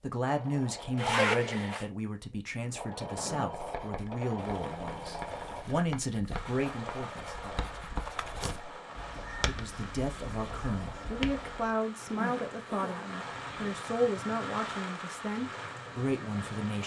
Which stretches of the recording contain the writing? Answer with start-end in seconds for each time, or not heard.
2.6-11.7.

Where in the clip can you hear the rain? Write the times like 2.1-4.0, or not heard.
4.3-16.8.